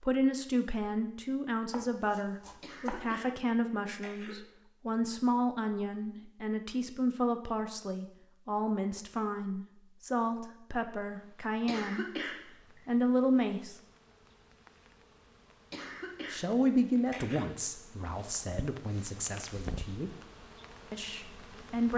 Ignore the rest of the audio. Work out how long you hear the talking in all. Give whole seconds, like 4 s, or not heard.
18 s.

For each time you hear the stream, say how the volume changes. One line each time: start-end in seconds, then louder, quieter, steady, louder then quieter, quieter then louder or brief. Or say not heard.
not heard.